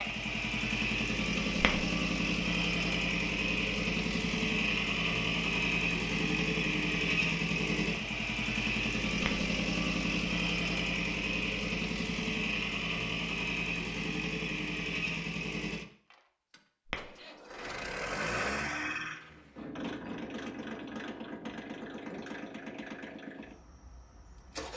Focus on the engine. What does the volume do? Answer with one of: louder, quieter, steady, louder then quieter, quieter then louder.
quieter.